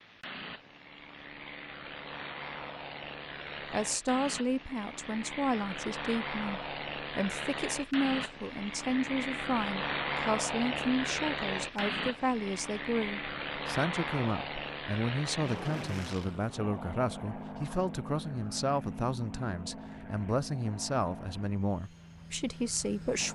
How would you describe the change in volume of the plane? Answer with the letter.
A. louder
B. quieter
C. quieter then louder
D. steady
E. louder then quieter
E.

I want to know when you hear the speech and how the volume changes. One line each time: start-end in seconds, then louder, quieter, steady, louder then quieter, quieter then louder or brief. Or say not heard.
3.7-23.2 steady.